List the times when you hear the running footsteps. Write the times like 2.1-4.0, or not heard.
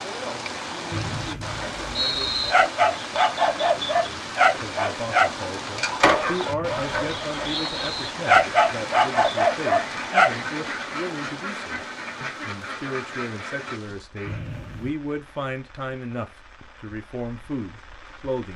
not heard.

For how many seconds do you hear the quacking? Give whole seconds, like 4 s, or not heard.
6 s.